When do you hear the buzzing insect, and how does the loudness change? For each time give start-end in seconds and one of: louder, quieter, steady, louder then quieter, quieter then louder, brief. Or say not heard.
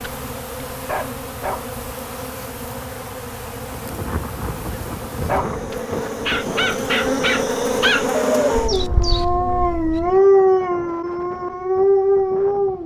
0.0-10.2 louder.